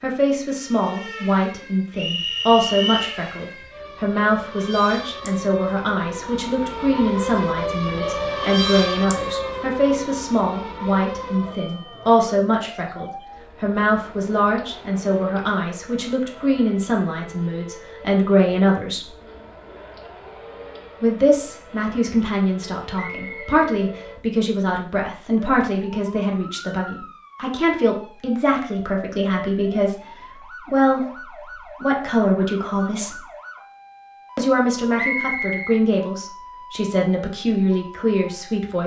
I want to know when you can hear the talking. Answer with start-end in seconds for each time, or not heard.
0.0-19.1, 21.0-33.2, 34.4-38.8.